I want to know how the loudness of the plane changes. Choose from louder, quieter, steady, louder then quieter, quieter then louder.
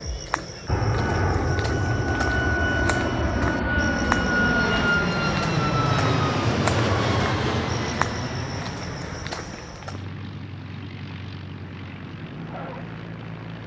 quieter.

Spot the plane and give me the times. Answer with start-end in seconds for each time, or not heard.
0.0-13.6.